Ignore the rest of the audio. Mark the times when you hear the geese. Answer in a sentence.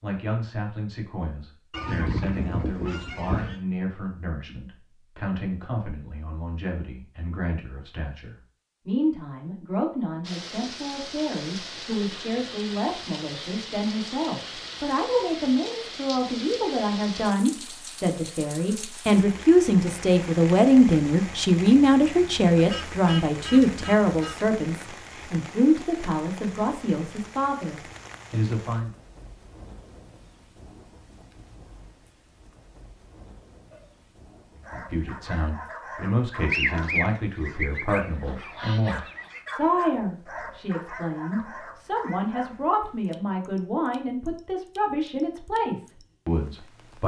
The geese can be heard from 1.7 to 3.6 s, from 22.6 to 24.5 s and from 36.5 to 39.4 s.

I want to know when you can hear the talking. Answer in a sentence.
You can hear the talking from 0.0 to 28.9 s and from 34.6 to 47.0 s.